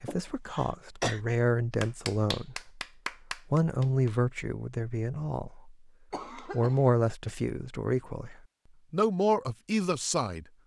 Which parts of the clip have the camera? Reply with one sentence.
You can't hear the camera here.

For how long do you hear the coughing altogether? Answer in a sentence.
The coughing can be heard for 2 seconds in total.